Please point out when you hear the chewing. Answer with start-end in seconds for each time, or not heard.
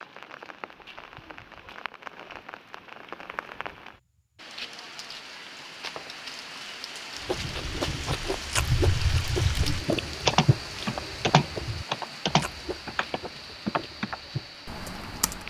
7.2-14.6.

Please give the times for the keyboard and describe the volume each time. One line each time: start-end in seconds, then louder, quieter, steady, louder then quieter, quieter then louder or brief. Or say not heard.
8.6-15.4 louder then quieter.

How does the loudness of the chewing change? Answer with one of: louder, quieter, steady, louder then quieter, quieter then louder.
quieter.